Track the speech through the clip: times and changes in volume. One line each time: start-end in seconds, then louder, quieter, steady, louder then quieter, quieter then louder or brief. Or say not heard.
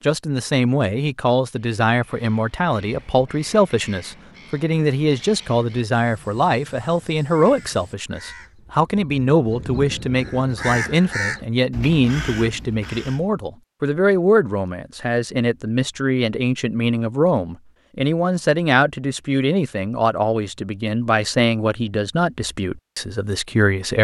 0.0-23.9 steady.